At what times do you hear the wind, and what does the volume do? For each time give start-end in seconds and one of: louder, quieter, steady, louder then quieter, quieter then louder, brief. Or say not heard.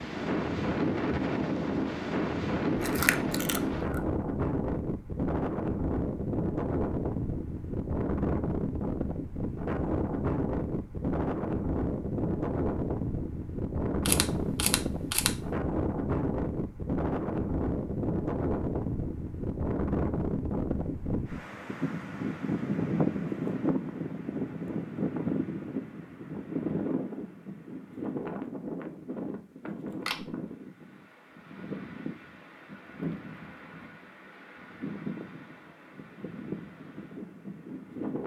0.0-38.2 quieter.